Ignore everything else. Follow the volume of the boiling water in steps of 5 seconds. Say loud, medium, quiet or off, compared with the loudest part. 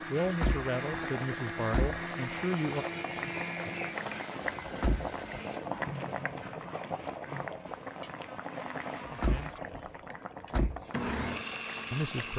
loud, loud, medium.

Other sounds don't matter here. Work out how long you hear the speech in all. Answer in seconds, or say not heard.
4 s.